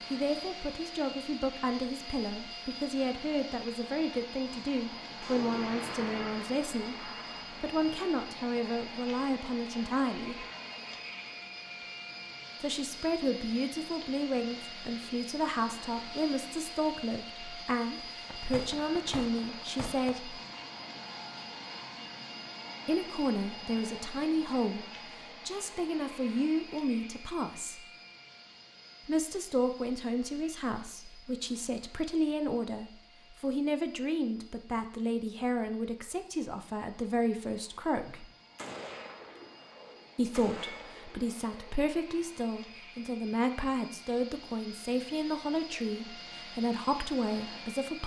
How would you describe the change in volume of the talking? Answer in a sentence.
The volume of the talking stays about the same.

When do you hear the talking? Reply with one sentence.
The talking can be heard from 0.1 to 10.4 s, from 12.6 to 20.4 s, from 22.9 to 27.9 s, from 29.1 to 38.2 s and from 40.1 to 48.0 s.